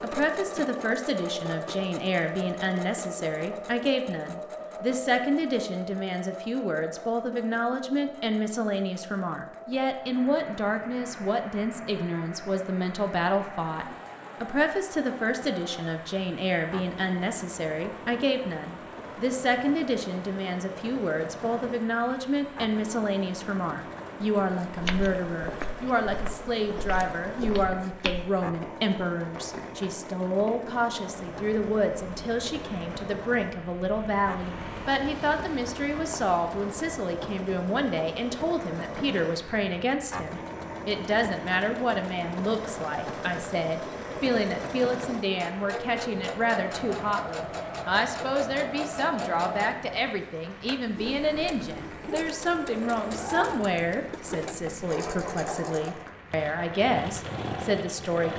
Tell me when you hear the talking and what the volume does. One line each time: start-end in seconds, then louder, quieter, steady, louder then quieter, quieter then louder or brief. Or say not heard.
0.0-58.3 steady.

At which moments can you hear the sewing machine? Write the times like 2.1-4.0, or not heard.
0.0-58.3.